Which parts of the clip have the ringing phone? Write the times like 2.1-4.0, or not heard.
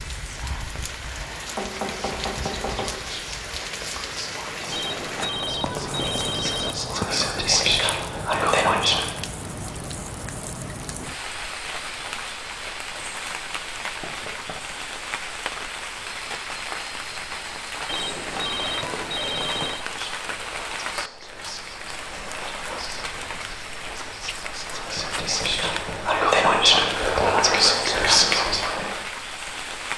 4.7-6.8, 17.9-19.9.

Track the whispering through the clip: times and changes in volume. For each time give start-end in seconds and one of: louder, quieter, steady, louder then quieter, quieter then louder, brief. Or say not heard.
0.2-9.2 louder
19.8-28.9 louder.